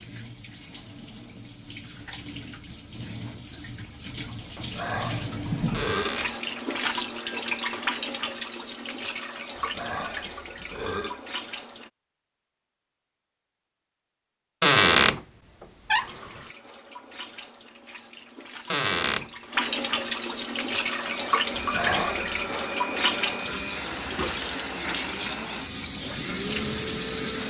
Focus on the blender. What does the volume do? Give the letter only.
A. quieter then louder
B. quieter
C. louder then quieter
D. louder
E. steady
E.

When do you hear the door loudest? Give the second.
15 s.